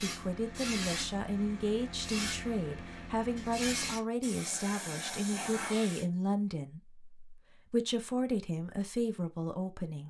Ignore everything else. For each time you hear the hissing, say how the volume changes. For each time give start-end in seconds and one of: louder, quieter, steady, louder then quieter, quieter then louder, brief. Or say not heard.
0.0-6.0 quieter then louder.